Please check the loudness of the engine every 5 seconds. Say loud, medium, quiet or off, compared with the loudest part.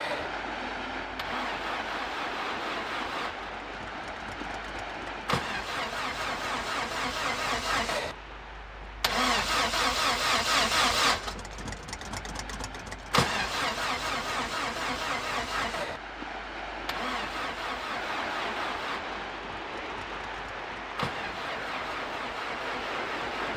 medium, loud, loud, medium, medium.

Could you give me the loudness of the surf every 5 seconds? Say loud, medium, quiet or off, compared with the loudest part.
loud, medium, medium, loud, loud.